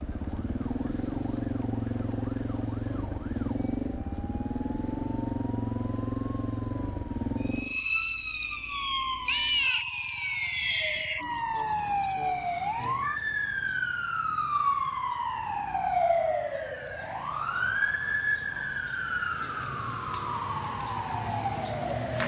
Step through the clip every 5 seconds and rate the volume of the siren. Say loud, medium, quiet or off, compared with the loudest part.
quiet, loud, loud, loud, loud.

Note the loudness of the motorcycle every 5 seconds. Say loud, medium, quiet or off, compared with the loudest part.
loud, loud, quiet, quiet, off.